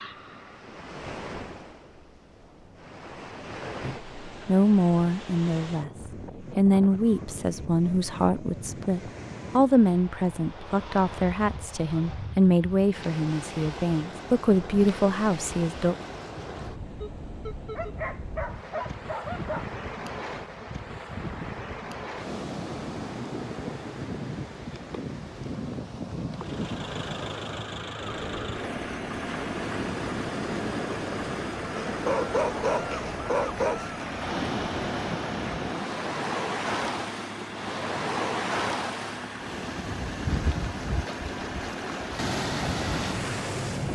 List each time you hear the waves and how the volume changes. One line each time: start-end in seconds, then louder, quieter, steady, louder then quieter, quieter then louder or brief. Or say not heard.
0.0-43.9 louder.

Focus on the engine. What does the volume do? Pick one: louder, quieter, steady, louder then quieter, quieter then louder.
steady.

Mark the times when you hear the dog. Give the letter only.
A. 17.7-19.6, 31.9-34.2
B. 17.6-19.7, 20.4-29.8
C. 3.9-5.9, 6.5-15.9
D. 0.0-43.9
A.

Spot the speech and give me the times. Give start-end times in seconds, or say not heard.
3.9-5.9, 6.5-15.9.